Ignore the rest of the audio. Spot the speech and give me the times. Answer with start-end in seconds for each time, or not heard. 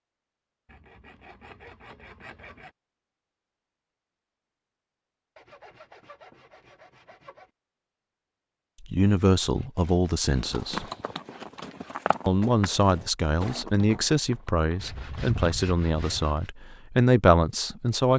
8.8-10.8, 12.2-18.1.